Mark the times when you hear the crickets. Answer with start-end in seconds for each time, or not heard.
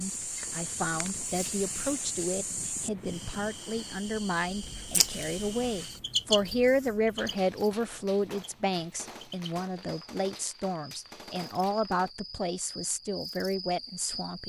0.0-14.4.